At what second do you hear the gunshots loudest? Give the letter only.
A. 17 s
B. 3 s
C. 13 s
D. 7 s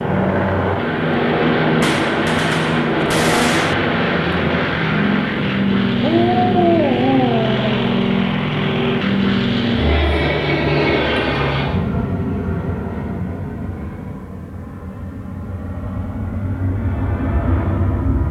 B.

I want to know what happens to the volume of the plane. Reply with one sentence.
The volume of the plane goes down.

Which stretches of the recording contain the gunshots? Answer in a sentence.
You can hear the gunshots from 1.8 to 3.8 s.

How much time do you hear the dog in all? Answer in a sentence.
The dog can be heard for 2 seconds in total.